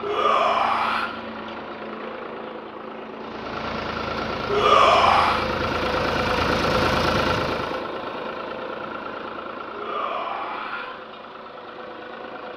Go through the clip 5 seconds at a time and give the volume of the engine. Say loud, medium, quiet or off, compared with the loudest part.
medium, loud, quiet.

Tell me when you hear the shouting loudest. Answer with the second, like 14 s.
5 s.